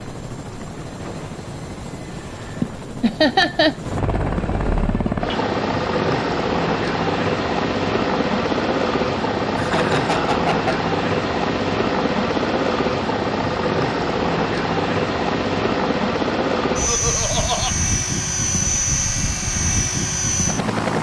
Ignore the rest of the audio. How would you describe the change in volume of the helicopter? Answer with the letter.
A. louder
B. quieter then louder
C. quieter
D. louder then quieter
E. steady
A.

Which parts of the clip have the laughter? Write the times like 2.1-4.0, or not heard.
2.6-4.0, 9.6-10.8, 16.9-17.8.